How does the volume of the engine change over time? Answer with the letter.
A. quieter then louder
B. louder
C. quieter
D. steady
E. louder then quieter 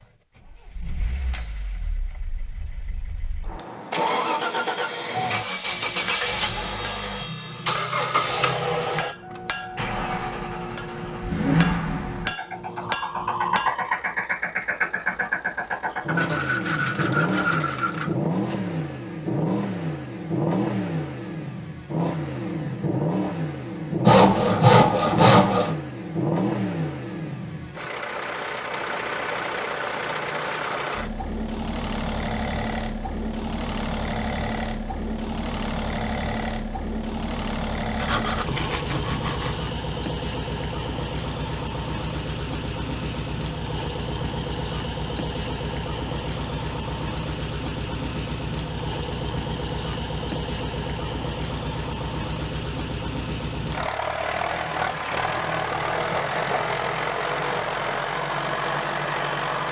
D.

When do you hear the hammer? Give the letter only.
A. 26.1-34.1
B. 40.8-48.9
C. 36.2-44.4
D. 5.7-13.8
D.